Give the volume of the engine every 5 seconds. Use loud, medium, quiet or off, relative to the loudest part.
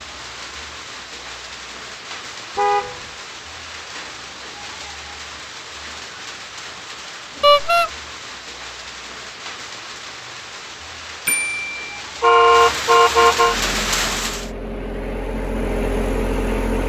off, off, medium, loud.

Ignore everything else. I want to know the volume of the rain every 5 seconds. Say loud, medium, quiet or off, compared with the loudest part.
medium, medium, loud, off.